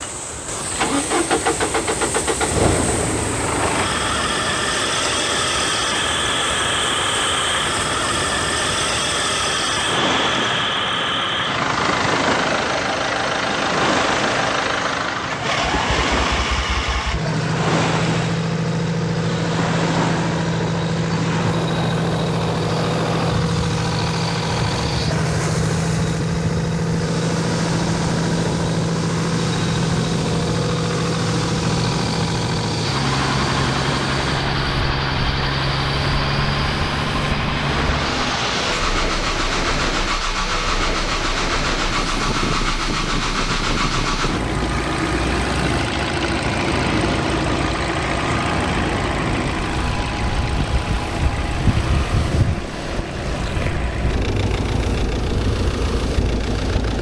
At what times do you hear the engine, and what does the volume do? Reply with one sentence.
The engine can be heard from 0.0 to 56.9 s, at a steady volume.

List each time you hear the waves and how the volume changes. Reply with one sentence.
You can hear the waves from 0.0 to 56.9 s, at a steady volume.